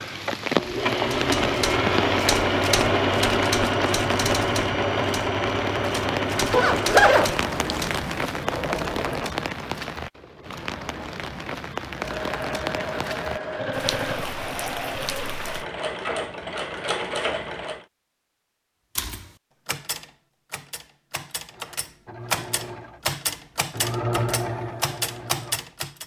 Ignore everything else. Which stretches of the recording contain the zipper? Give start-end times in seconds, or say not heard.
6.5-7.8.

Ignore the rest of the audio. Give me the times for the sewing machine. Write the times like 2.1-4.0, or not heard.
0.0-9.4, 11.9-17.9, 21.5-26.0.